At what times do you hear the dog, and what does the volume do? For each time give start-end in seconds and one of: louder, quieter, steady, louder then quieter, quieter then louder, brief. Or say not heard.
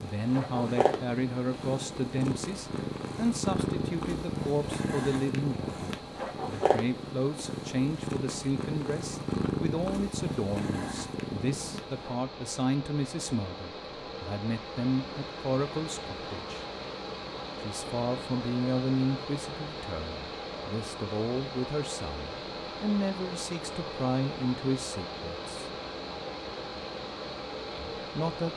not heard.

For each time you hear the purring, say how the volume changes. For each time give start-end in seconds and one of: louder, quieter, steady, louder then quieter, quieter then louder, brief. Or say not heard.
0.0-12.2 steady.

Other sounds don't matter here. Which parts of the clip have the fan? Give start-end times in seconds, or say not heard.
0.0-28.5.